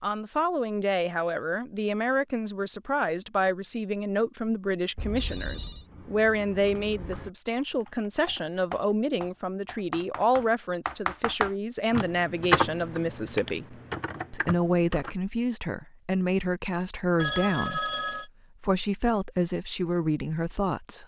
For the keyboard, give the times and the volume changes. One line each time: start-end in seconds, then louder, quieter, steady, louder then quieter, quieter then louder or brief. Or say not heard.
5.8-15.2 louder then quieter.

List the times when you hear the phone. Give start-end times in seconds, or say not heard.
5.0-5.8, 17.1-18.3.